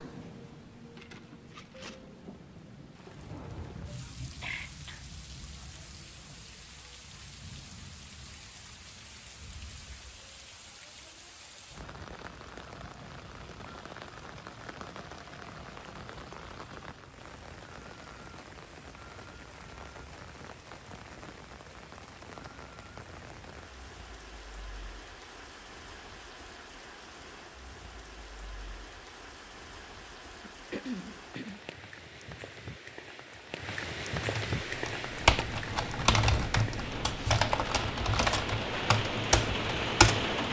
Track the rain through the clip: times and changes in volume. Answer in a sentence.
The rain can be heard from 0.0 to 40.4 s, getting louder.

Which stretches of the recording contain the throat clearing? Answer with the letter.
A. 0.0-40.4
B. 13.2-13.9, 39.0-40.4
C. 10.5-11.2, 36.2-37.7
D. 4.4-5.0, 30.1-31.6
D.